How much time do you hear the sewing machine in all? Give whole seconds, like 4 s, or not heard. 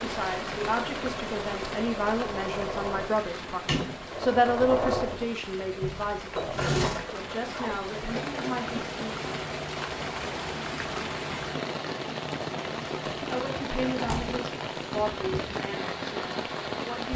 17 s.